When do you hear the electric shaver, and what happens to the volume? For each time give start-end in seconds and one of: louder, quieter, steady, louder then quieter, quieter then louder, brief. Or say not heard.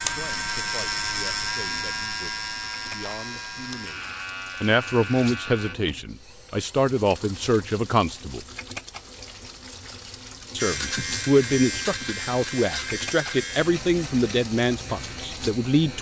0.0-5.8 quieter
10.6-15.9 quieter.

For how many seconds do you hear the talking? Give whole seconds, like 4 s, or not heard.
14 s.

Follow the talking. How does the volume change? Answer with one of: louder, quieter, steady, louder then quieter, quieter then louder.
louder.